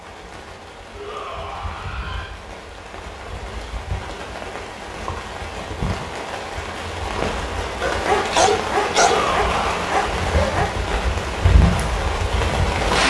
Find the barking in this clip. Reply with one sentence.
The barking can be heard from 7.8 to 10.7 s.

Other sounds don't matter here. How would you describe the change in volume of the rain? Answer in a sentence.
The volume of the rain goes up.